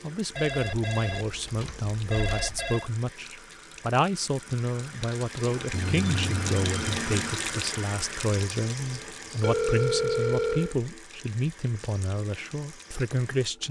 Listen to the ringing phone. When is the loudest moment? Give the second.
10 s.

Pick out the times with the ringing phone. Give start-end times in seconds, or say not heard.
0.3-2.9, 5.7-7.3, 9.4-10.8.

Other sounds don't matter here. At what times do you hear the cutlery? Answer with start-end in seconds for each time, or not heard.
not heard.